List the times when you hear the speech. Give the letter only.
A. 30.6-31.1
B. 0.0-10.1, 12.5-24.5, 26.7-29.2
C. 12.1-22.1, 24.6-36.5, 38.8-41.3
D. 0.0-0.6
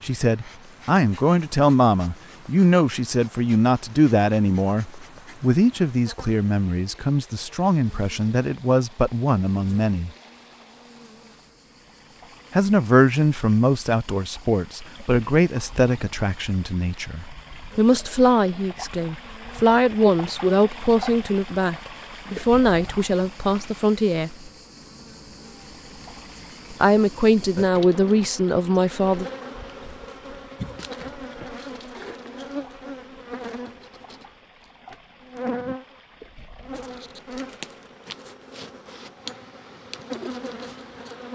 B.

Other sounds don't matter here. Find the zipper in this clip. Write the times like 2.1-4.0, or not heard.
not heard.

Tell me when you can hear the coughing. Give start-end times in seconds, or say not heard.
30.6-31.1.